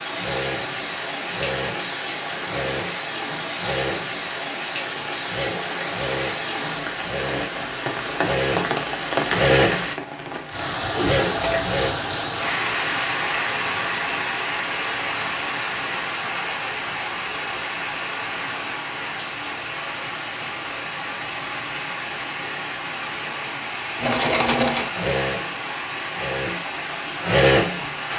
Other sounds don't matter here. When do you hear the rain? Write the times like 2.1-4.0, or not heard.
0.0-28.1.